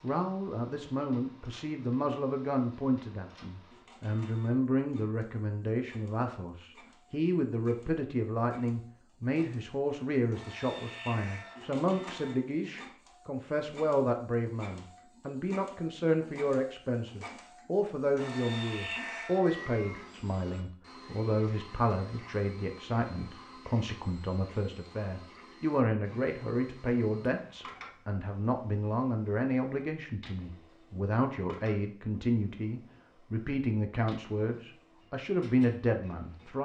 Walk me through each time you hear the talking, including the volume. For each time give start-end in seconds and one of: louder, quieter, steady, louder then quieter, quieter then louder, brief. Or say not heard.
0.0-36.6 steady.